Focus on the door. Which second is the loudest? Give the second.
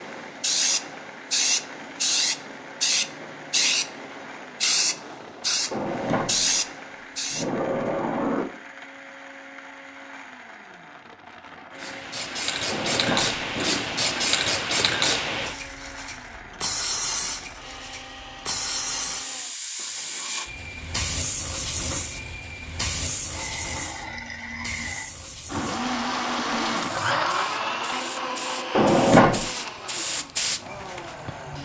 29 s.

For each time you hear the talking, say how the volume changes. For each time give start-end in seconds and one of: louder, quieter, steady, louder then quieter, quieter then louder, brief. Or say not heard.
not heard.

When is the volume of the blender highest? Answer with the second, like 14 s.
27 s.